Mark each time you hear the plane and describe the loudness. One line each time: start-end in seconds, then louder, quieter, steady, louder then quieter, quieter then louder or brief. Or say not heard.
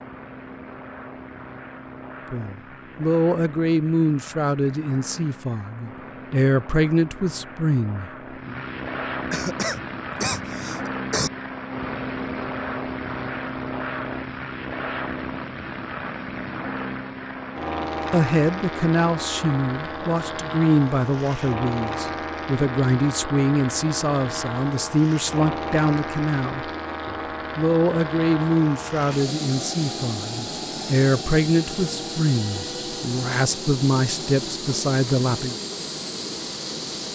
0.0-37.1 louder.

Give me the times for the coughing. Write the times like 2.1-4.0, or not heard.
9.3-11.3.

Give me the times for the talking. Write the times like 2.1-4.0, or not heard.
2.3-8.6, 18.1-35.5.